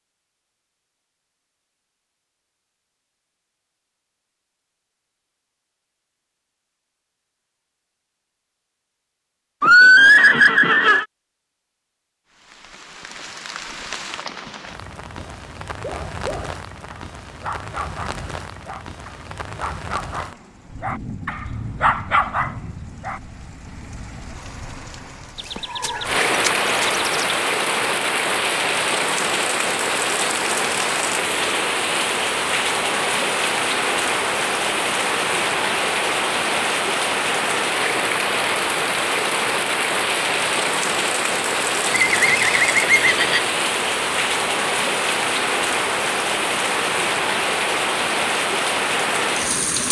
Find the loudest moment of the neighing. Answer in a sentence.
The volume of the neighing peaks at 10 seconds.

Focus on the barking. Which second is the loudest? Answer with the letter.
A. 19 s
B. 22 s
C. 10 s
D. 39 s
B.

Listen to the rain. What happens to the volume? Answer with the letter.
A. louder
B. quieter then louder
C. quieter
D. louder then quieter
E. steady
A.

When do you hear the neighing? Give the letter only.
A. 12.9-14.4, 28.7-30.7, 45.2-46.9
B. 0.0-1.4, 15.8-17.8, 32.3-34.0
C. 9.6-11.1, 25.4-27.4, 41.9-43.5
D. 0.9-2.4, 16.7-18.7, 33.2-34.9
C.